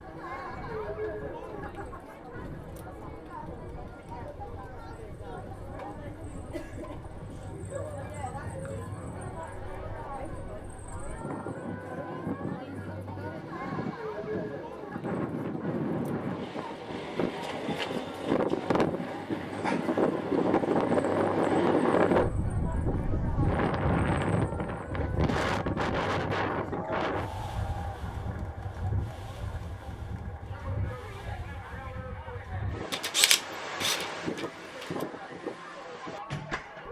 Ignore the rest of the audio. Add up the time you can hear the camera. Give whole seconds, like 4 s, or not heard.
2 s.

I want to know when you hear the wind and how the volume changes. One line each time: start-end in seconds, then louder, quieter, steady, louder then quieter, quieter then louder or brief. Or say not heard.
0.0-36.8 louder then quieter.